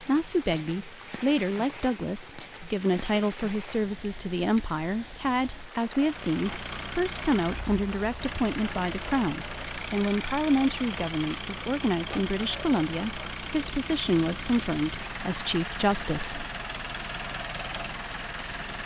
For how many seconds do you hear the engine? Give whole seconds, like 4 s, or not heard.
13 s.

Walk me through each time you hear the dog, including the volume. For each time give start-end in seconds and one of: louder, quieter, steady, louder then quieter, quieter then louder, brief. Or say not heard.
not heard.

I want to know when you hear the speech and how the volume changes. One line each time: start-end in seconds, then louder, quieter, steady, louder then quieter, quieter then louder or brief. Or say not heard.
0.0-16.4 steady.